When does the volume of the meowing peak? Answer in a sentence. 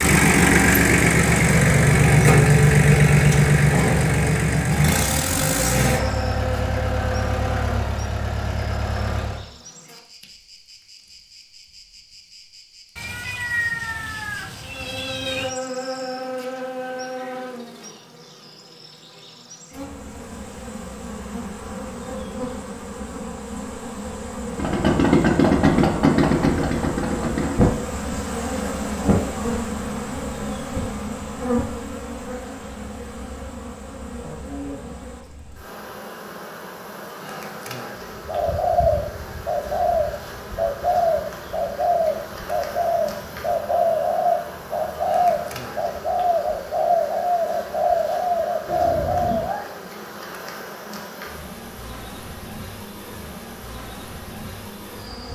The loudest moment of the meowing is at 14 seconds.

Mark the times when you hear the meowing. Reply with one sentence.
You can hear the meowing from 12.9 to 15.6 s and from 48.6 to 49.6 s.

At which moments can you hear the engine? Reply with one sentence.
You can hear the engine from 0.0 to 9.4 s and from 24.6 to 27.6 s.